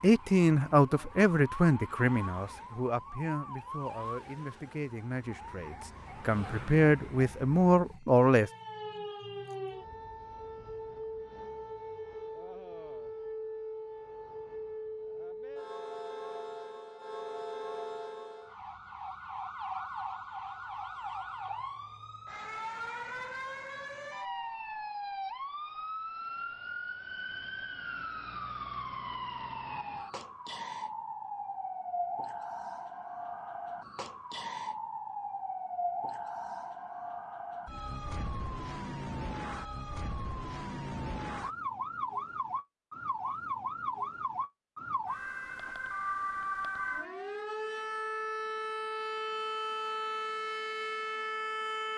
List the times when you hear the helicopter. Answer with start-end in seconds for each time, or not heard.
not heard.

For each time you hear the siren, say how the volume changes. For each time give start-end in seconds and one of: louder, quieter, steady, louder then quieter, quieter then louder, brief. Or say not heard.
0.0-51.9 louder.